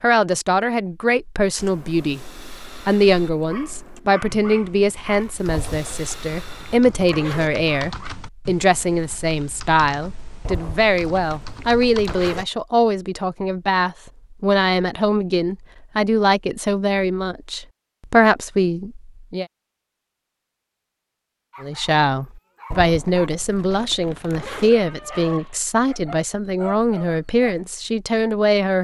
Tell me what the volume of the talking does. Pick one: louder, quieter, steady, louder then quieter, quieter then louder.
steady.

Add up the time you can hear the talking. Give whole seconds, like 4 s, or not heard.
27 s.